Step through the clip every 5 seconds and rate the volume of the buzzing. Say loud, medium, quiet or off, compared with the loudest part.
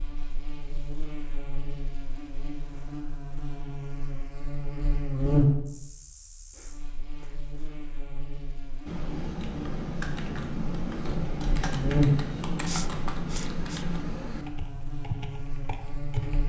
medium, loud, loud, medium.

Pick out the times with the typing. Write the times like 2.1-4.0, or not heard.
8.8-16.4.